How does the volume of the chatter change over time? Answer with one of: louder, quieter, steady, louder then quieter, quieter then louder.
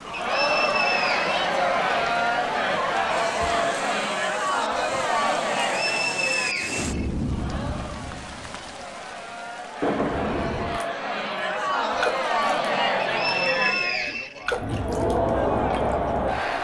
quieter then louder.